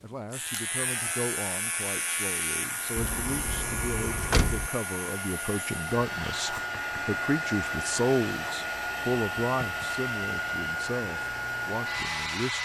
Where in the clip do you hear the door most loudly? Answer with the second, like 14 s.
4 s.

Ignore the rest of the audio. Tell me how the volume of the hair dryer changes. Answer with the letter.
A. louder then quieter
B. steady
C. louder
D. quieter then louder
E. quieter
C.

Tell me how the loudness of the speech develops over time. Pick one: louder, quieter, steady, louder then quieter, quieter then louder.
louder then quieter.